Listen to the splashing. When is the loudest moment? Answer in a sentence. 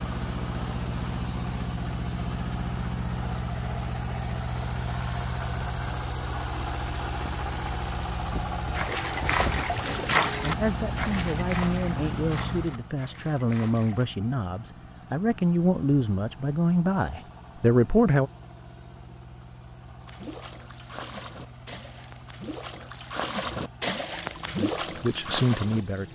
The volume of the splashing peaks at 10 seconds.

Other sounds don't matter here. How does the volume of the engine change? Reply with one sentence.
The loudness of the engine goes down.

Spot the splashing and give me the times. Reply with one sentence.
You can hear the splashing from 8.7 to 14.2 s and from 20.1 to 26.1 s.